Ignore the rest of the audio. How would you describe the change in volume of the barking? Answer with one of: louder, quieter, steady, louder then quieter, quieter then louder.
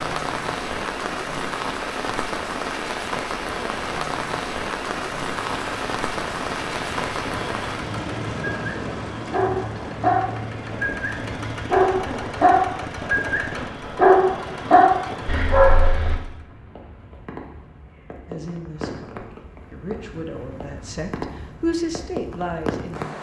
quieter then louder.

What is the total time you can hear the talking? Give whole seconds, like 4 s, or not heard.
5 s.